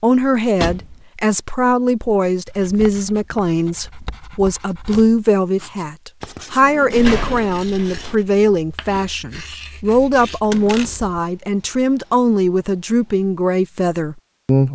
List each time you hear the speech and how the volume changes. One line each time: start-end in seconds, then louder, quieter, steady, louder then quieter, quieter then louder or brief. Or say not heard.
0.0-14.7 steady.